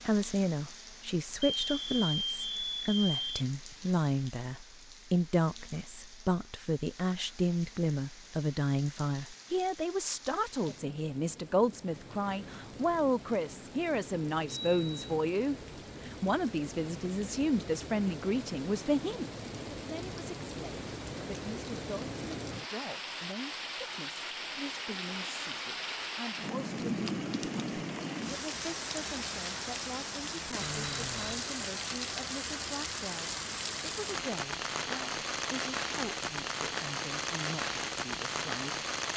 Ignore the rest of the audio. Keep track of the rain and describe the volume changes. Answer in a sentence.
The loudness of the rain goes up.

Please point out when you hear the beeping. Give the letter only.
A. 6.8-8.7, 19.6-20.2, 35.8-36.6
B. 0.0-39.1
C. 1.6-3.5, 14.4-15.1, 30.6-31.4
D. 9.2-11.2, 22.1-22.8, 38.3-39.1
C.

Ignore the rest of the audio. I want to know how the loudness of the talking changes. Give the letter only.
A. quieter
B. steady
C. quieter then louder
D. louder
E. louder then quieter
A.